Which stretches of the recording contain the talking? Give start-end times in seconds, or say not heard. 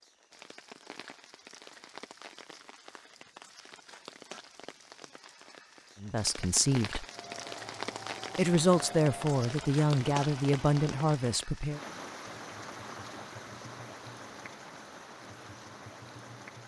6.0-7.0, 8.3-11.8.